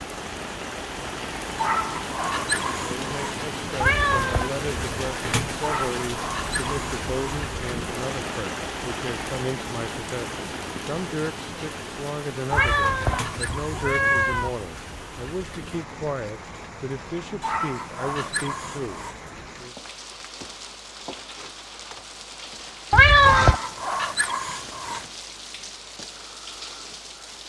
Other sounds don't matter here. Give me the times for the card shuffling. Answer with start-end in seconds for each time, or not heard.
not heard.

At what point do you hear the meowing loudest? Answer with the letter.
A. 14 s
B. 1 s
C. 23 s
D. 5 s
C.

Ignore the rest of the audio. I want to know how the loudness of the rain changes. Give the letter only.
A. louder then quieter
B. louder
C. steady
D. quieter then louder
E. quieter
E.